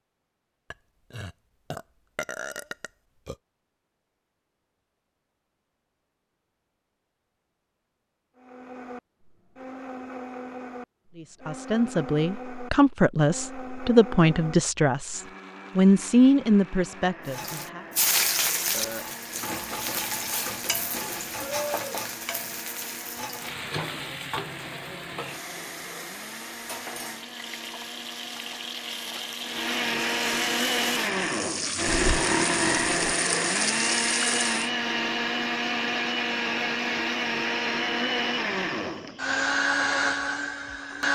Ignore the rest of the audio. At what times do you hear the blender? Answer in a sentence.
The blender can be heard from 8.3 to 41.1 s.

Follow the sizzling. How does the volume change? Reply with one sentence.
The loudness of the sizzling goes down, then up.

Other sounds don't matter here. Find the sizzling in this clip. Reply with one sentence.
You can hear the sizzling from 17.2 to 34.7 s.